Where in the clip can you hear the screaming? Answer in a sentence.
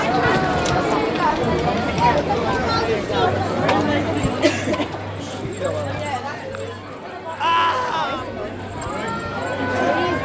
You can hear the screaming from 0.0 to 0.9 s and from 7.4 to 8.2 s.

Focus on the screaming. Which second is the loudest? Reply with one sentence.
The volume of the screaming peaks at 8 seconds.